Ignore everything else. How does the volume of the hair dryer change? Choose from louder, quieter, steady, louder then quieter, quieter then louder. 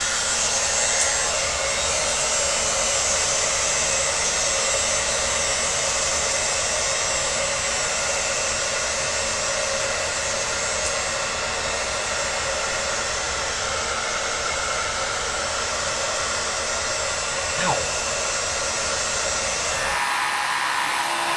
steady.